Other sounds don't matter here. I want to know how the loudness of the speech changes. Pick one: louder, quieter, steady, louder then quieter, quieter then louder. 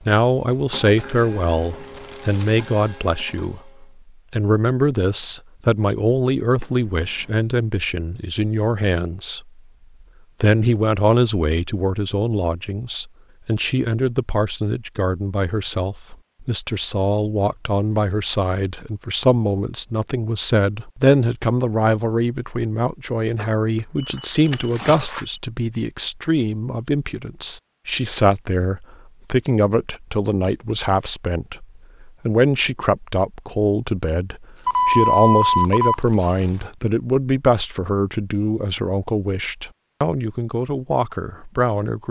steady.